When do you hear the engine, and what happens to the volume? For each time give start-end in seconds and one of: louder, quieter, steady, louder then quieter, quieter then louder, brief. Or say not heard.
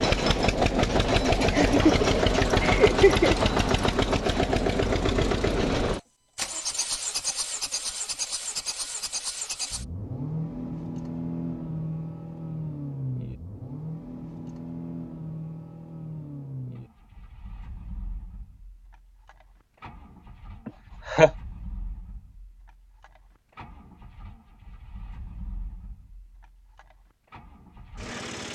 0.0-28.5 quieter.